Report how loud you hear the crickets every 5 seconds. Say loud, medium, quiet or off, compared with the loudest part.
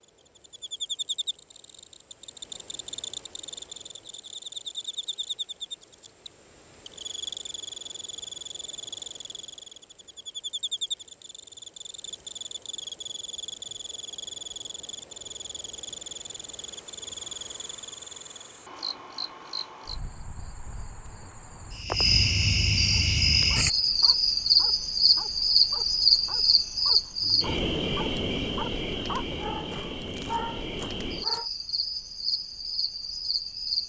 quiet, quiet, quiet, quiet, loud, loud, medium.